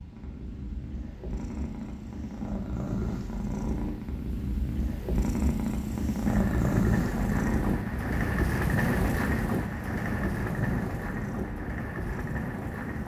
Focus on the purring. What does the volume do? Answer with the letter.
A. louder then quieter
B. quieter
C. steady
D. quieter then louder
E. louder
A.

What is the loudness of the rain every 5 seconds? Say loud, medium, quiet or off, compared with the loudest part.
off, loud, loud.